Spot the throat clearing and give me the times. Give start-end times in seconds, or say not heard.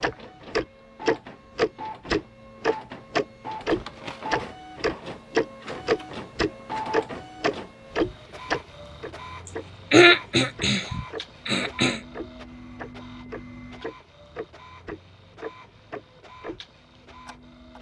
9.4-12.0.